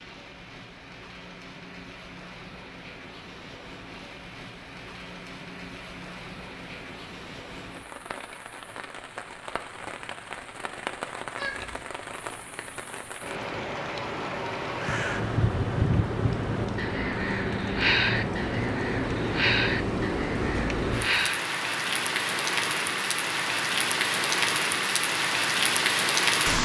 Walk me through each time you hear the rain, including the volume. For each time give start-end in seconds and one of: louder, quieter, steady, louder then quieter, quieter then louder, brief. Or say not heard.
0.0-26.6 louder.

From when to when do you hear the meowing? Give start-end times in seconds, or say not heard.
11.3-11.8.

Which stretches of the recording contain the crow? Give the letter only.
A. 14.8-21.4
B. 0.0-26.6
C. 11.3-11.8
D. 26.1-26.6
A.